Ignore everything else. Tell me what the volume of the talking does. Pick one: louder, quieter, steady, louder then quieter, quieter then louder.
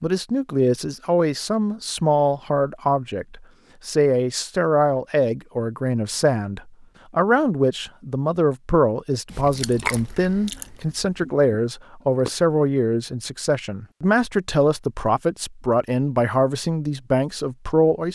steady.